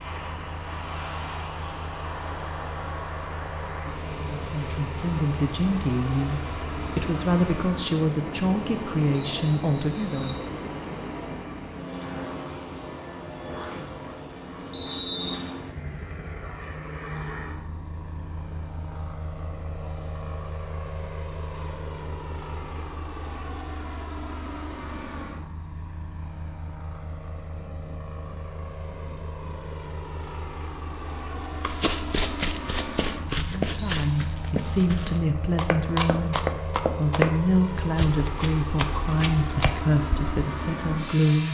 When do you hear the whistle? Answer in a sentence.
You can hear the whistle from 9.3 to 10.4 s, from 14.7 to 15.4 s and from 33.8 to 34.4 s.